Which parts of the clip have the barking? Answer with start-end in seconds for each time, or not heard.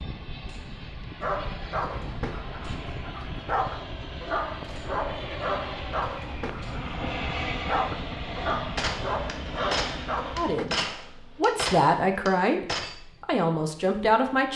1.2-10.7.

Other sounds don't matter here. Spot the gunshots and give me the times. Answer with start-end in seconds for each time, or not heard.
8.8-12.9.